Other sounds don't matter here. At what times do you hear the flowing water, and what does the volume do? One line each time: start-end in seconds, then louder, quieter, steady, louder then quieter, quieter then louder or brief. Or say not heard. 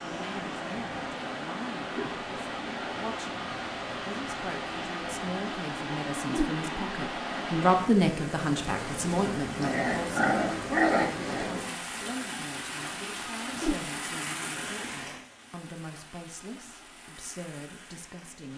0.0-18.5 quieter.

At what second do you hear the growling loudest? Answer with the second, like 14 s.
11 s.